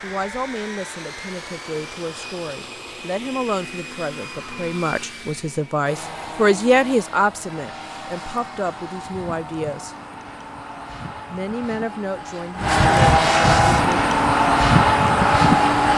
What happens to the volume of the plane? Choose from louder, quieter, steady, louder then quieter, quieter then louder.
louder.